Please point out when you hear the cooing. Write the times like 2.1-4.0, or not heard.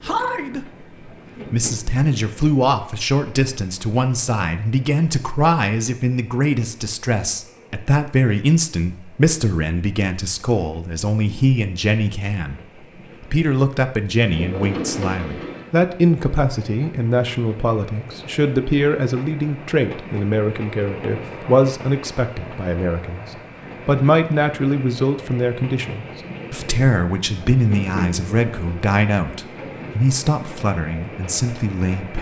14.3-15.6.